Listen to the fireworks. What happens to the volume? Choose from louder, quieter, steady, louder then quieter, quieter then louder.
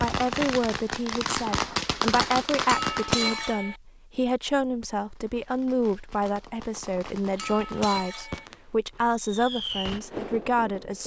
quieter then louder.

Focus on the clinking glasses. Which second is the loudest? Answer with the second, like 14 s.
3 s.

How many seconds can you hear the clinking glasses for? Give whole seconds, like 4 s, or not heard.
2 s.